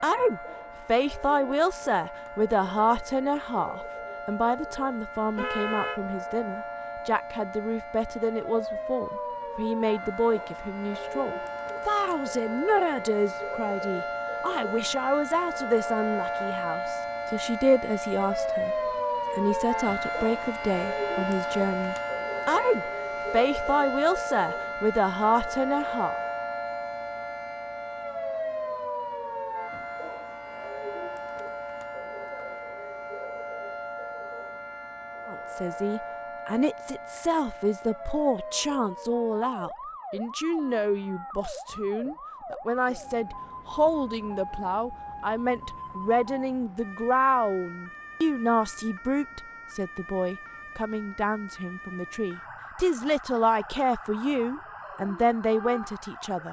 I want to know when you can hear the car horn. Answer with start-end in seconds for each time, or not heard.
5.3-6.0.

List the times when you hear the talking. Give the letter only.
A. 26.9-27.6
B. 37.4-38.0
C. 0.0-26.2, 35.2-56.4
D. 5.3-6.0
C.